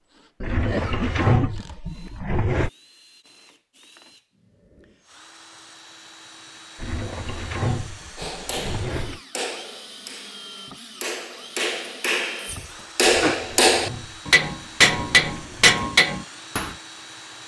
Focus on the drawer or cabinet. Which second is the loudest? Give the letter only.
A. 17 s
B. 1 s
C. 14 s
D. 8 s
B.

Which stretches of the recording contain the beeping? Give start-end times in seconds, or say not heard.
not heard.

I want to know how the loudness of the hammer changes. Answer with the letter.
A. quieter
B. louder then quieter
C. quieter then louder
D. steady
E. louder
E.